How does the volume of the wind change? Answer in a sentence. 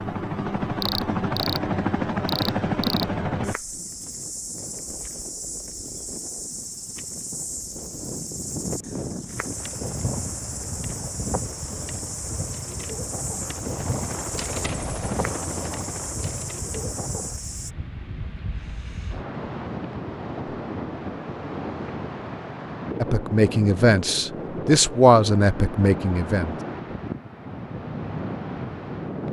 The volume of the wind goes up.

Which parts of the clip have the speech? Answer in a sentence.
The speech can be heard from 23.0 to 26.6 s.